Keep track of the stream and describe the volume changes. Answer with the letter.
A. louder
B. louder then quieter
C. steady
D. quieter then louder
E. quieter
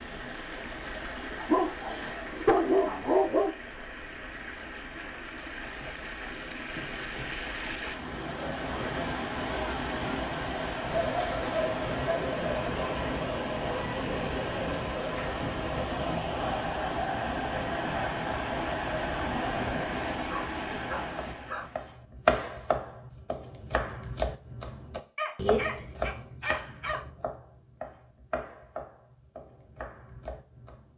A.